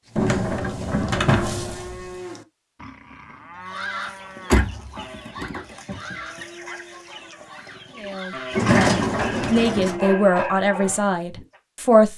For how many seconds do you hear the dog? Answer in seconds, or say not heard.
7 s.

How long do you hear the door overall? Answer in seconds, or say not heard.
5 s.